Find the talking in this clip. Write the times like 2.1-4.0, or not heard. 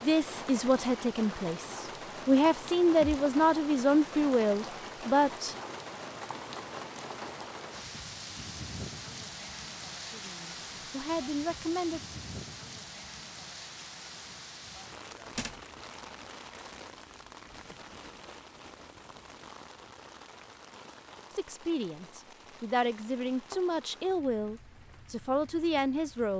0.0-5.5, 10.1-12.0, 21.3-26.3.